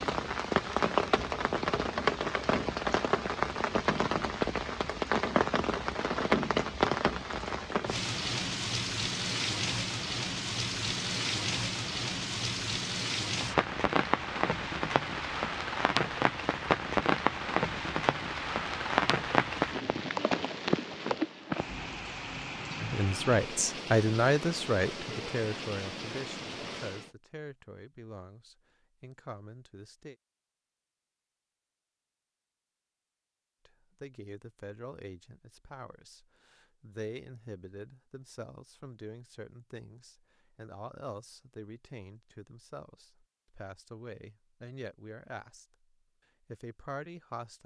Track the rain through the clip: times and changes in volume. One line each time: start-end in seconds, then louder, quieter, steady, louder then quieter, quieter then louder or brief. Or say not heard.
0.0-27.1 quieter.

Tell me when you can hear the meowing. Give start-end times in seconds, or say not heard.
not heard.